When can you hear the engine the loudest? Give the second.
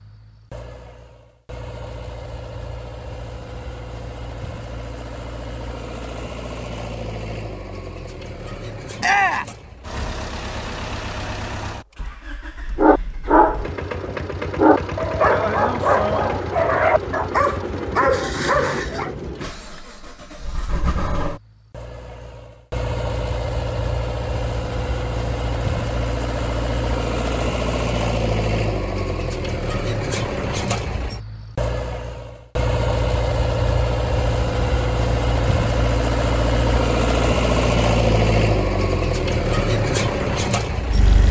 38 s.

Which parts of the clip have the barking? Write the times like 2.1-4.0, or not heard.
12.8-19.1.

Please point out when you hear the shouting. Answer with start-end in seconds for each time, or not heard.
9.0-9.6.